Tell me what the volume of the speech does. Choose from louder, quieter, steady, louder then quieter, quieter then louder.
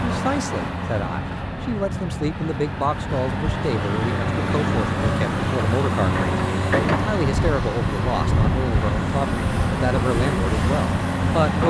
steady.